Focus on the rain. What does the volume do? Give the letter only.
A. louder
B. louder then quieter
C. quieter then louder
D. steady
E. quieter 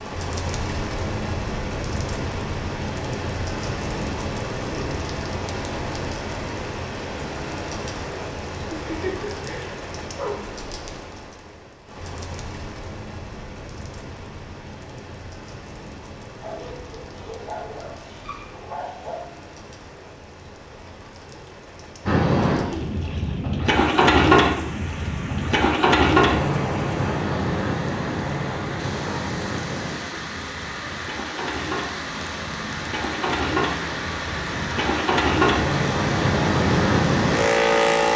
C.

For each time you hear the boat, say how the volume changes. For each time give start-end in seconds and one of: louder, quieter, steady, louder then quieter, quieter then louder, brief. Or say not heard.
22.1-38.1 quieter then louder.